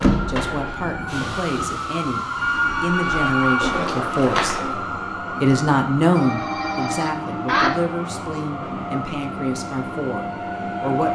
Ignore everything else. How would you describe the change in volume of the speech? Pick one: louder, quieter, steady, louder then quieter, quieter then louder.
louder then quieter.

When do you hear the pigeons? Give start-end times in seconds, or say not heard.
2.9-4.9.